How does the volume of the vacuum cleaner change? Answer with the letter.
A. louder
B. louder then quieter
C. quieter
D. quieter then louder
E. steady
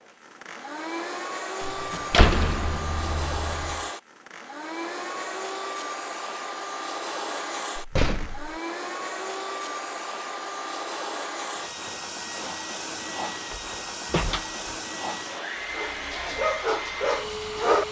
E.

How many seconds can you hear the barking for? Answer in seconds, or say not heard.
2 s.